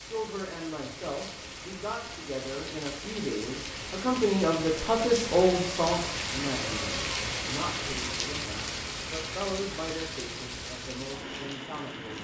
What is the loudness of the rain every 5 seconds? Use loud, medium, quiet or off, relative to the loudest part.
medium, loud, medium.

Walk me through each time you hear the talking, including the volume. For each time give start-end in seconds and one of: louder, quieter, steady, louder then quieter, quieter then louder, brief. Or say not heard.
0.0-12.1 louder then quieter.